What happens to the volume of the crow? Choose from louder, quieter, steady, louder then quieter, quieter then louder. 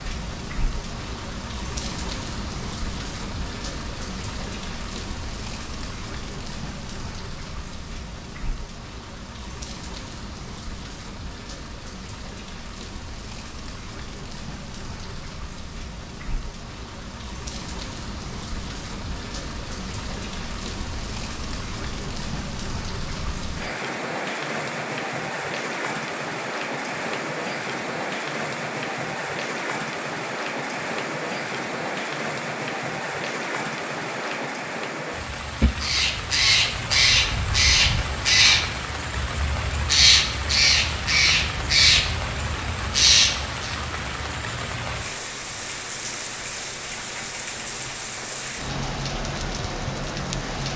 steady.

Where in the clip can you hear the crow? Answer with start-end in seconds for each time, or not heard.
35.6-43.8.